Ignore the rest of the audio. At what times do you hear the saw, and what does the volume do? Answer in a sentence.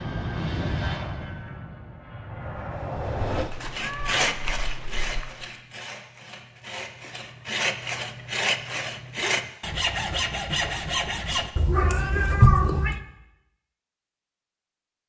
The saw can be heard from 3.5 to 11.5 s, getting quieter then louder.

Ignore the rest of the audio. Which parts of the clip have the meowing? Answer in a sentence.
You can hear the meowing from 3.2 to 5.2 s and from 11.6 to 12.9 s.